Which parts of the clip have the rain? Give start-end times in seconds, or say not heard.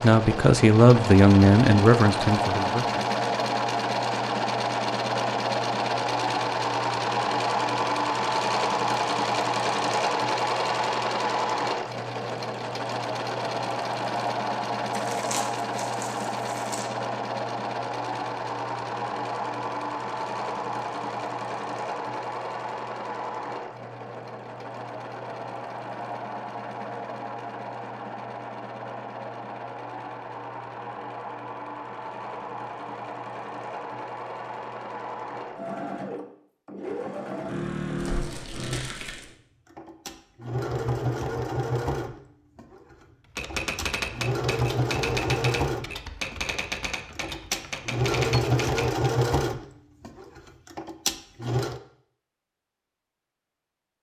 not heard.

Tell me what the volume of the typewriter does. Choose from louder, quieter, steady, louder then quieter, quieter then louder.
steady.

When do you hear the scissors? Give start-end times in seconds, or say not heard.
not heard.